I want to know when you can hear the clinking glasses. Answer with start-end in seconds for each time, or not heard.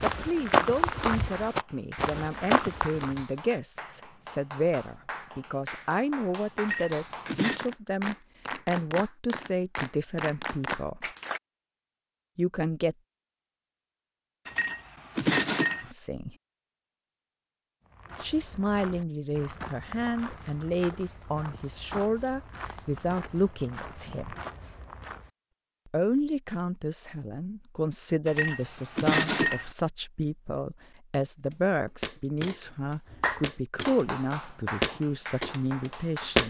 6.5-7.7, 14.4-15.8, 28.2-29.6.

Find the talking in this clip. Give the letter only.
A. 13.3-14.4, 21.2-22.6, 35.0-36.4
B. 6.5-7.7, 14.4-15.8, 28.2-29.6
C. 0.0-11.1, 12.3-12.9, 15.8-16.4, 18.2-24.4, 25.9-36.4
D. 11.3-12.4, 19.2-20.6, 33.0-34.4
C.